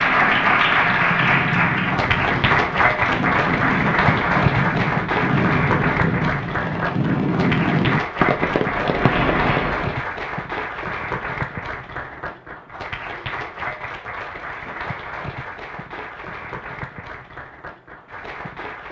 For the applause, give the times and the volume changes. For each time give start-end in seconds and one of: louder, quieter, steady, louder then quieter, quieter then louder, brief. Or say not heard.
0.0-18.8 quieter.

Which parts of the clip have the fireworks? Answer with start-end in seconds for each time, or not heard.
0.0-10.1.